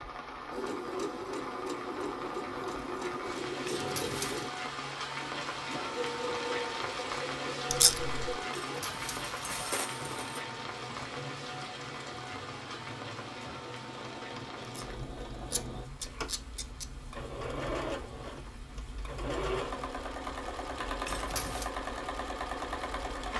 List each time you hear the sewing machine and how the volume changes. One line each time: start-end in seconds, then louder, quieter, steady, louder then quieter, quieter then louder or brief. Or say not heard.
0.0-23.3 quieter then louder.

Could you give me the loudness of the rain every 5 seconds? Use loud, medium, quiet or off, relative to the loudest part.
loud, loud, medium, quiet, quiet.